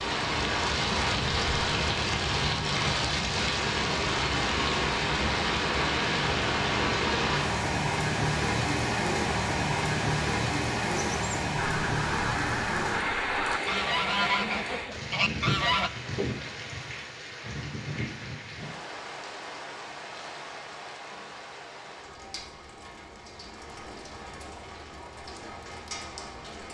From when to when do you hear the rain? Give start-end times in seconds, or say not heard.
0.0-26.7.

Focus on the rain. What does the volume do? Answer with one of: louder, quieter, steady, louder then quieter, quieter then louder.
quieter.